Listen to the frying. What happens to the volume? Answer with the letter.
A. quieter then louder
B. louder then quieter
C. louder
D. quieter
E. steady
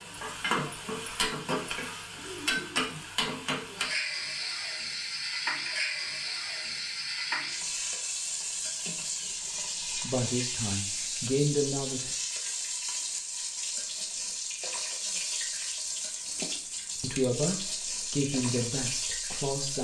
E.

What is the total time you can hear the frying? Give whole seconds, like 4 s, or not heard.
20 s.